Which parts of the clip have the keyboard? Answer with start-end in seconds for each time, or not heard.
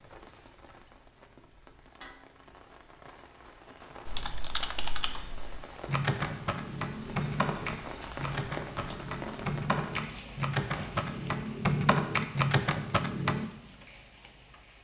4.0-13.5.